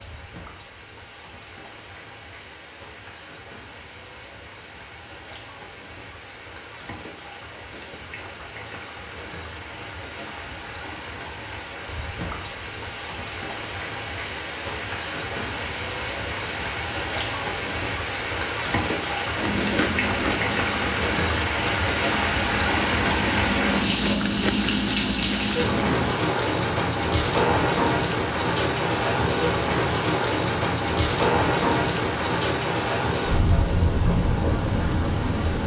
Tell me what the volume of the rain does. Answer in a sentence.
The volume of the rain goes up.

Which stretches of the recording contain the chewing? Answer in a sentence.
The chewing can be heard from 19.4 to 26.2 s.